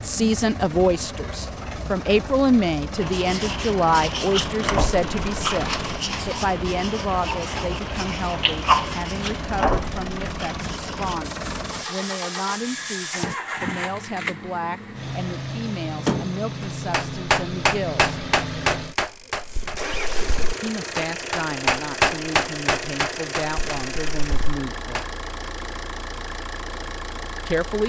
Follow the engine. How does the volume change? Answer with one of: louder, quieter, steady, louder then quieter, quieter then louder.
steady.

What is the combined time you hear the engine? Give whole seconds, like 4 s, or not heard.
28 s.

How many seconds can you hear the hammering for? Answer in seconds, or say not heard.
9 s.